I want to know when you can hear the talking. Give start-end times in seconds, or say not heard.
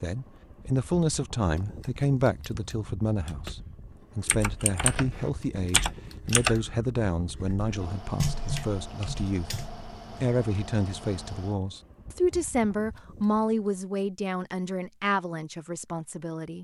0.0-9.5, 10.2-16.6.